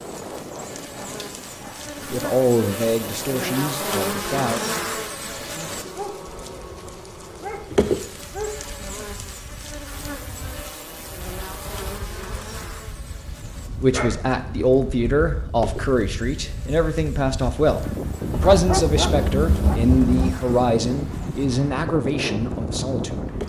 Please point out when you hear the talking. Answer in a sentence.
You can hear the talking from 2.1 to 4.6 s and from 13.8 to 23.2 s.